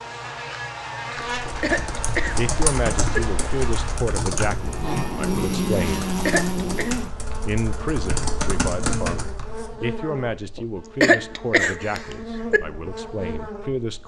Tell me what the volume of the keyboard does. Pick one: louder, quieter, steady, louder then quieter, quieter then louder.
quieter then louder.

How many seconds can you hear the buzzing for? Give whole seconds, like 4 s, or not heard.
14 s.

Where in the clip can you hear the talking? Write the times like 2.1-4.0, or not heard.
2.4-6.1, 7.5-14.0.